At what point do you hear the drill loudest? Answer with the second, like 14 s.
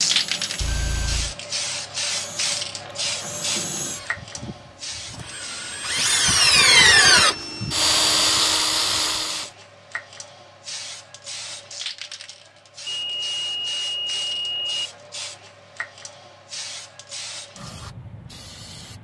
7 s.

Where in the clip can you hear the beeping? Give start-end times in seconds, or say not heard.
0.6-1.4, 6.5-7.9, 12.8-14.9.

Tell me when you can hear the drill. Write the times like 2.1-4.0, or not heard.
0.0-9.5.